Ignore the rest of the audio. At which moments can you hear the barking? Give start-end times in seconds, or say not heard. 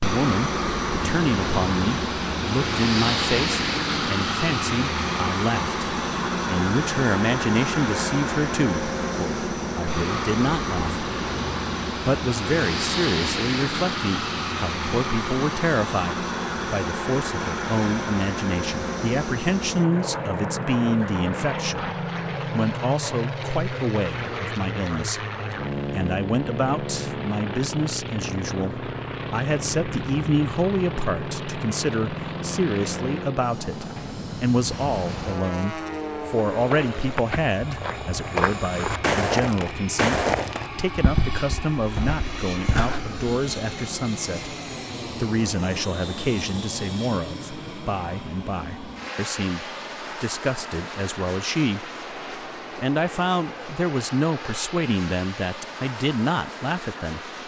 not heard.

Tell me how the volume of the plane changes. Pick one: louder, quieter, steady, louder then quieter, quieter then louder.
quieter.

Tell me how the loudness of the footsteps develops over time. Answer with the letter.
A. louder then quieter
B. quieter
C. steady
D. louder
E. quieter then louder
A.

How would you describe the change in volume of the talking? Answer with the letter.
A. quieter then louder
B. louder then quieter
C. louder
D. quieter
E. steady
E.